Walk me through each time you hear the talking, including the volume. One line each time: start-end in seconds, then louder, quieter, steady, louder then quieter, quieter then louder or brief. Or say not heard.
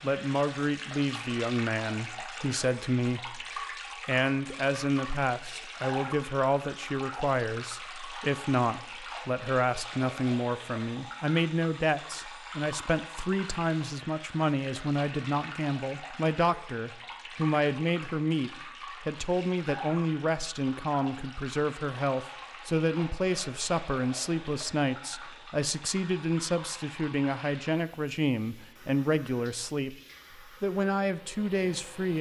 0.0-32.1 steady.